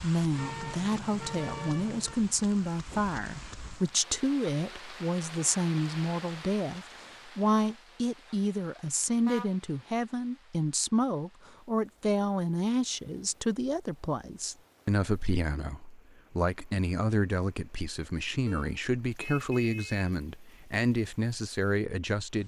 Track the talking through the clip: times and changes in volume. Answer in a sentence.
The talking can be heard from 0.0 to 22.4 s, at a steady volume.